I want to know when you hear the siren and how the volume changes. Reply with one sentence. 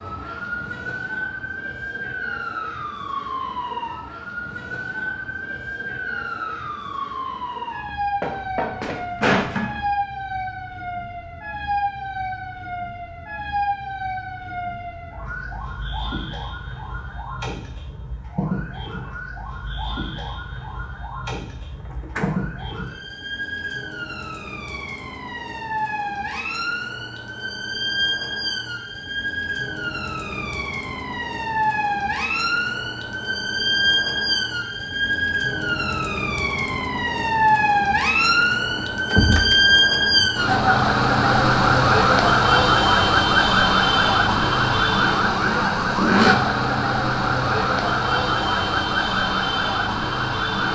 The siren can be heard from 0.0 to 50.6 s, getting louder.